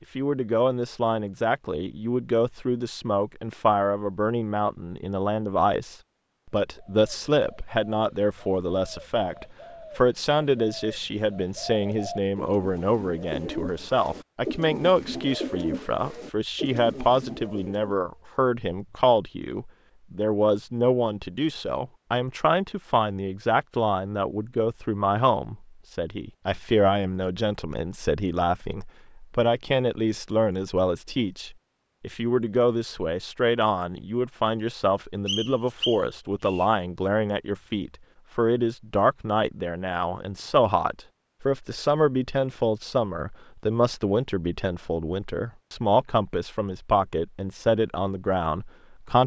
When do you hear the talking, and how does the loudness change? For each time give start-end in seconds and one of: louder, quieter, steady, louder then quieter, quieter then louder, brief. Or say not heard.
0.1-49.2 steady.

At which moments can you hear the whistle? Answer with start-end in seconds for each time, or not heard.
35.2-36.7.